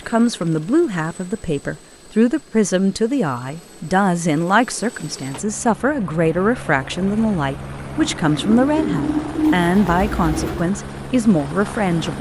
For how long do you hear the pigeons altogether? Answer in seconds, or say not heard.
3 s.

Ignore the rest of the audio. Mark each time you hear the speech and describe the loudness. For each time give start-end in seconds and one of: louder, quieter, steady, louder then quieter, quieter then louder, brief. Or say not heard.
0.1-12.1 steady.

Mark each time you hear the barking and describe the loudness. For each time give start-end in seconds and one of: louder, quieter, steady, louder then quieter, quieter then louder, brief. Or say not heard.
not heard.